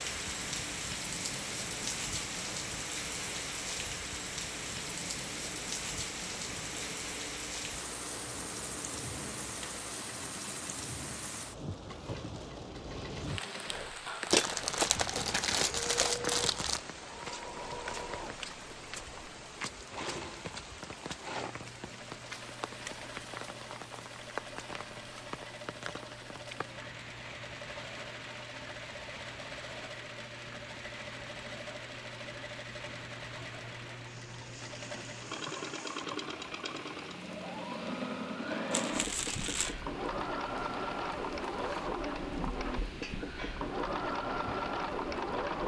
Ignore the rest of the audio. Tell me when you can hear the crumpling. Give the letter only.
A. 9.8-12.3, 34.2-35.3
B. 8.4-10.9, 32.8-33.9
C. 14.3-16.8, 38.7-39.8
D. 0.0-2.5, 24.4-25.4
C.